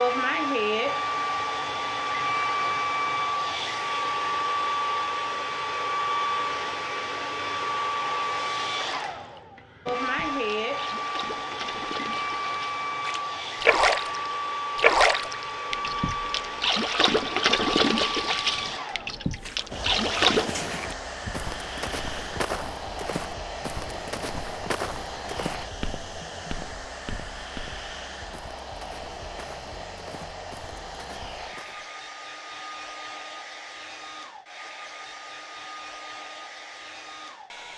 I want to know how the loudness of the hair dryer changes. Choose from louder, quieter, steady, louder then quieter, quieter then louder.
quieter.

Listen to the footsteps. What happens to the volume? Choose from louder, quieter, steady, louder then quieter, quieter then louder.
quieter.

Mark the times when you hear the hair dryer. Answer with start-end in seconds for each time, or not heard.
0.0-37.7.